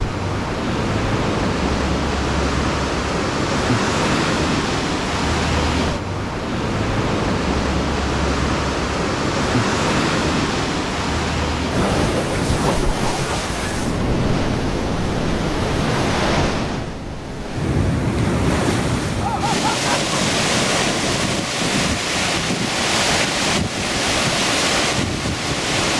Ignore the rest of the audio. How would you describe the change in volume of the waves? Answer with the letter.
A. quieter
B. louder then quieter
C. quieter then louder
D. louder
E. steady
E.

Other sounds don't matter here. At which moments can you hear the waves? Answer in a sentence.
The waves can be heard from 0.0 to 25.9 s.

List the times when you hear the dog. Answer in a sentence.
You can hear the dog from 19.2 to 20.1 s.